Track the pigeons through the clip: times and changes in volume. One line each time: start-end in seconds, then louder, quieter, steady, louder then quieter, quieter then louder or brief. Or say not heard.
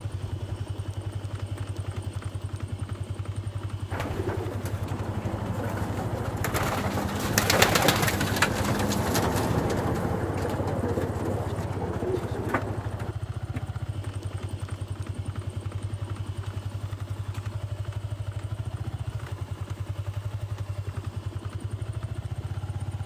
3.9-13.6 louder then quieter.